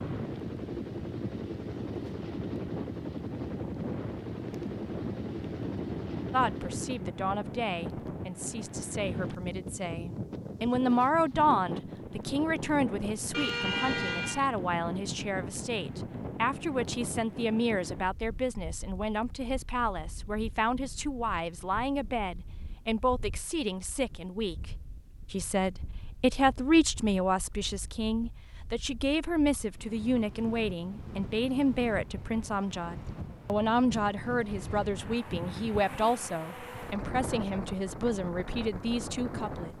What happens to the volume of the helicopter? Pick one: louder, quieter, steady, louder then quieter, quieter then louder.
steady.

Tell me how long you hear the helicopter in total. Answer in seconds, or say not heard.
7 s.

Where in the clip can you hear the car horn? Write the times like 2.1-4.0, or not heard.
13.3-14.5.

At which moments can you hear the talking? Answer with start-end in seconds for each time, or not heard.
6.3-24.6, 25.3-39.7.